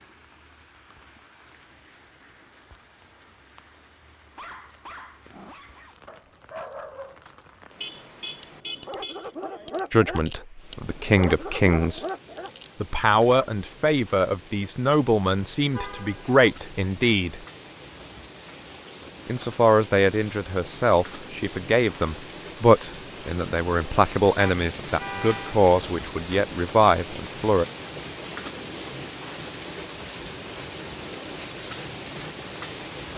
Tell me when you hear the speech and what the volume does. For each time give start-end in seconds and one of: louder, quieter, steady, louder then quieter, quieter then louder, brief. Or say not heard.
9.9-12.0 brief
12.8-17.4 quieter then louder
19.2-27.6 steady.